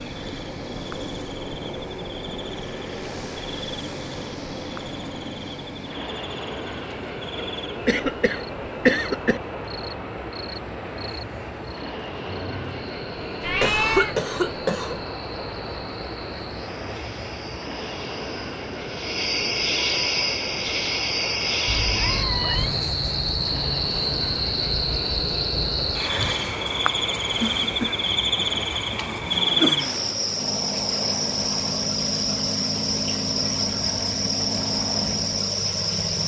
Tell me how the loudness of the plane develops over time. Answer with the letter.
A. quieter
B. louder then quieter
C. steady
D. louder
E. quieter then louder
C.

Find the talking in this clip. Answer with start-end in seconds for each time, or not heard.
not heard.